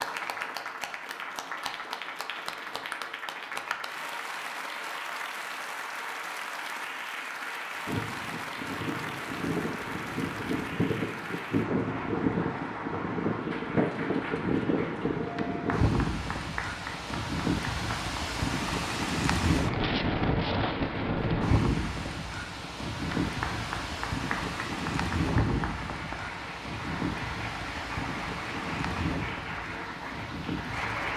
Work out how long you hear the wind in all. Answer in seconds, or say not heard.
23 s.